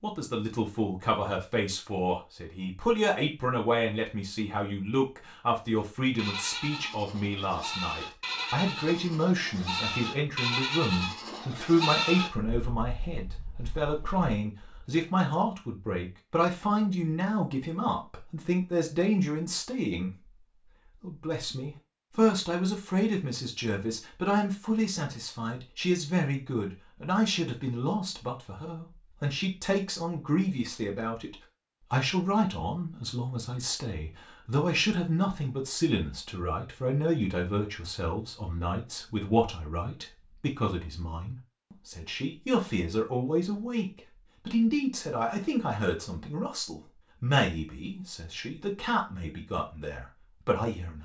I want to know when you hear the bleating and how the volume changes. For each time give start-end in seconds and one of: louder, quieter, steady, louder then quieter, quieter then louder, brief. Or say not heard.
5.8-14.8 louder then quieter.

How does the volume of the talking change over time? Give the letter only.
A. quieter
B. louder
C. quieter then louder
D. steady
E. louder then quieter
D.